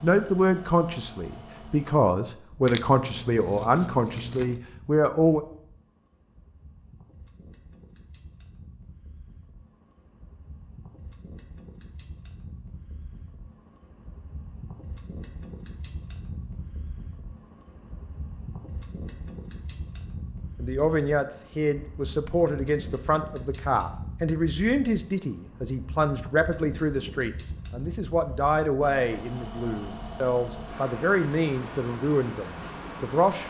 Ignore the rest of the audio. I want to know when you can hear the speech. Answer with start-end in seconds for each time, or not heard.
0.0-5.4, 20.6-33.4.